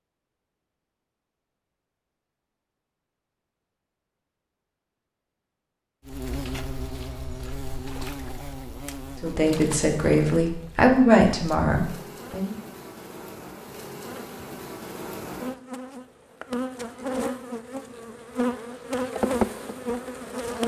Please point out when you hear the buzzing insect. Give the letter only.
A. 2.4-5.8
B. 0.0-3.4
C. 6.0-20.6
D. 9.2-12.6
C.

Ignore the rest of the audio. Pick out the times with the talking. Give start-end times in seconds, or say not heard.
9.2-12.6.